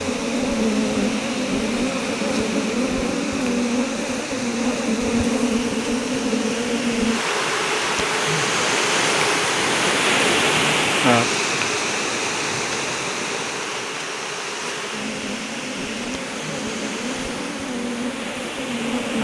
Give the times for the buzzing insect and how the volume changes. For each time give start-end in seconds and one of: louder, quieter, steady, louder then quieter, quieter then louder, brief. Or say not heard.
0.0-19.1 quieter.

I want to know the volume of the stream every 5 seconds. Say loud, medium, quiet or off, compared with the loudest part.
medium, loud, loud, medium.